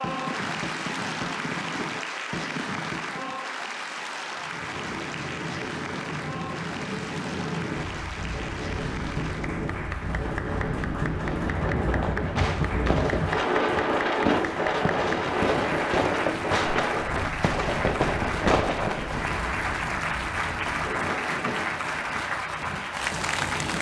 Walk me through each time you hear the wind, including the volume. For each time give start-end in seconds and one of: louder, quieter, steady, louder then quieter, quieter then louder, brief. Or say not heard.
4.3-23.7 louder then quieter.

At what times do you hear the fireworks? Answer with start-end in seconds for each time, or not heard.
0.0-3.4, 11.2-19.3.